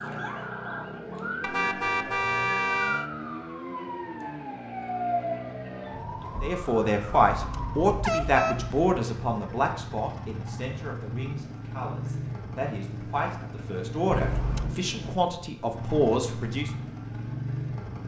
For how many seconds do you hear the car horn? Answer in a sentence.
The car horn can be heard for 4 seconds in total.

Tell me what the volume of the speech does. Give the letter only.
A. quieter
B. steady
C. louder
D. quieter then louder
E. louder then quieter
D.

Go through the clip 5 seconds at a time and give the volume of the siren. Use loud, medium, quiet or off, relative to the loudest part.
loud, loud, off, off.